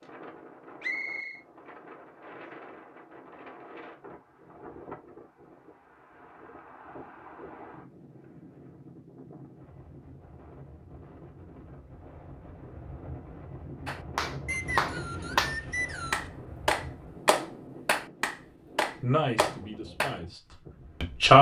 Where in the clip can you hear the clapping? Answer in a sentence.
You can hear the clapping from 13.8 to 20.1 s.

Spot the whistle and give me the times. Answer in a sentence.
The whistle can be heard from 0.8 to 1.4 s and from 14.4 to 16.3 s.